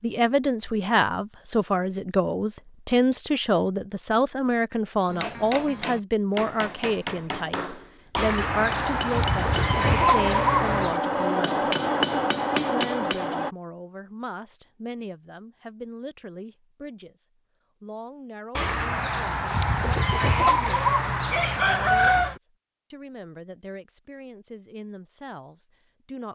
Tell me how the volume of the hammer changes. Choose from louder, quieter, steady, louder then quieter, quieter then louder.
louder.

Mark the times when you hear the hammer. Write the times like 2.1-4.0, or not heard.
5.0-13.6.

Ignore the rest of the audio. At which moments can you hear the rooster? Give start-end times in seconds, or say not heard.
8.2-10.9, 18.6-22.4.